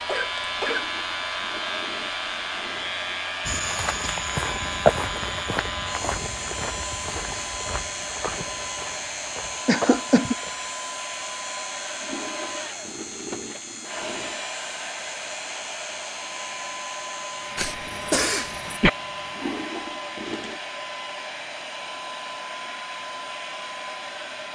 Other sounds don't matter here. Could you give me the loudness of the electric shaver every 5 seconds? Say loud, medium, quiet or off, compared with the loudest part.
loud, loud, medium, medium, off.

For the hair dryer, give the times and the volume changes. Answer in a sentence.
The hair dryer can be heard from 0.0 to 24.5 s, at a steady volume.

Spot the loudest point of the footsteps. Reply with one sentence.
The loudest moment of the footsteps is at 5 seconds.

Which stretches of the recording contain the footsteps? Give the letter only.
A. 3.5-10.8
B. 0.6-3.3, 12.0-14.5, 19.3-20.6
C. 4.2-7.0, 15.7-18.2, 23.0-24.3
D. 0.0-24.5
A.